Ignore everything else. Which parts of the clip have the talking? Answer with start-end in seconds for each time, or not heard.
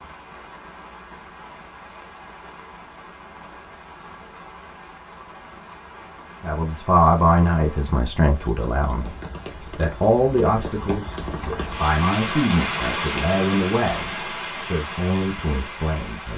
6.4-9.2, 9.8-16.3.